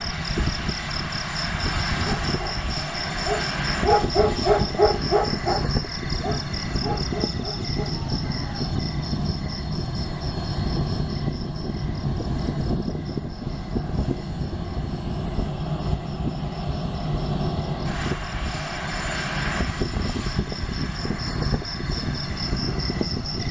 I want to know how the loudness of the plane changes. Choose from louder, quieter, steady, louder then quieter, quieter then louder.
steady.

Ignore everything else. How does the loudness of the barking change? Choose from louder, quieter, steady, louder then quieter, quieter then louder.
louder then quieter.